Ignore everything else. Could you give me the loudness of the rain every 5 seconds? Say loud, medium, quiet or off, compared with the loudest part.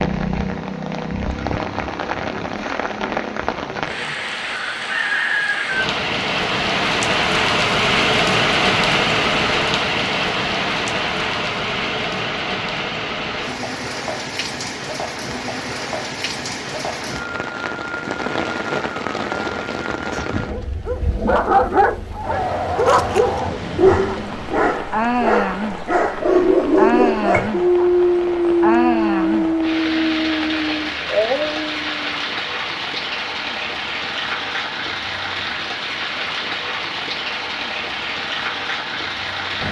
medium, loud, medium, medium, medium, medium, medium, medium.